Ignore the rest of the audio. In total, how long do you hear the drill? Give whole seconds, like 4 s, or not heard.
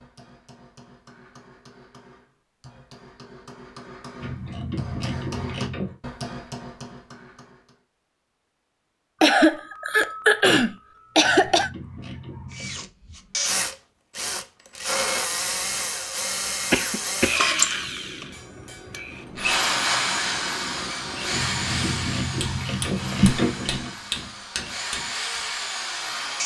14 s.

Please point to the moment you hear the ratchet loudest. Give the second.
23 s.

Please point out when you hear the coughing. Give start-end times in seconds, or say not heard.
9.2-11.7, 16.7-17.4.